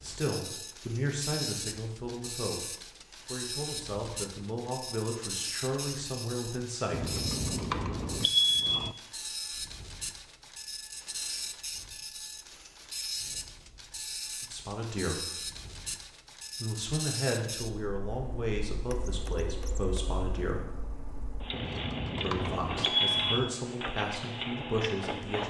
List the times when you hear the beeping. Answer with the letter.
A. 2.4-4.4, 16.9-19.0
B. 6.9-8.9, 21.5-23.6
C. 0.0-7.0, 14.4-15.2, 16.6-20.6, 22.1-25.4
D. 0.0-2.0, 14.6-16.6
B.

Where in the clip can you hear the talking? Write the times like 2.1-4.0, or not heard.
0.0-7.0, 14.4-15.2, 16.6-20.6, 22.1-25.4.